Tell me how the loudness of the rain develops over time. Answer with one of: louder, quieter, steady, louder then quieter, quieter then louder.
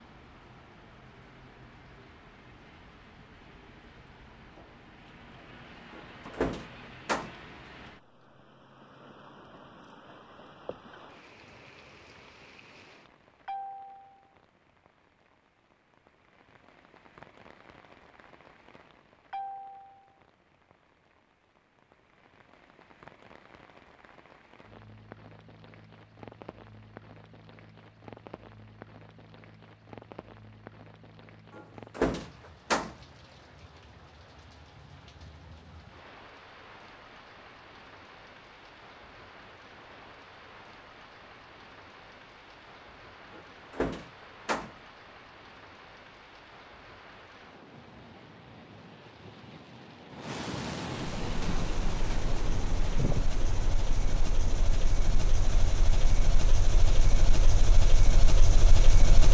louder.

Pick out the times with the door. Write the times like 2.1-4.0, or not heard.
6.0-7.3, 31.6-32.9, 43.4-44.7.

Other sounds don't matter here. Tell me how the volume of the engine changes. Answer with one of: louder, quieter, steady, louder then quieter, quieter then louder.
louder.